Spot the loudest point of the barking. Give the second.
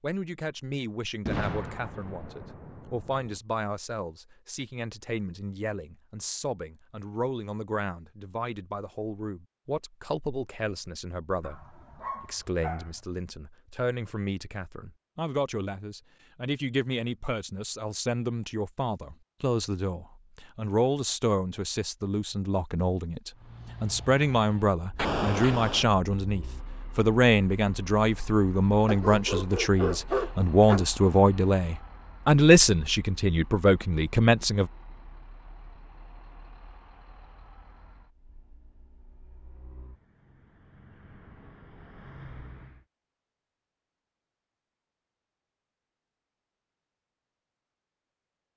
30 s.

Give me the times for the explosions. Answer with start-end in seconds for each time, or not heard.
1.2-3.4, 24.9-25.9.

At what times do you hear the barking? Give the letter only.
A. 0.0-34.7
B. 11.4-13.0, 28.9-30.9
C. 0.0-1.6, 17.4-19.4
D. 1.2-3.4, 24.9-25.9
B.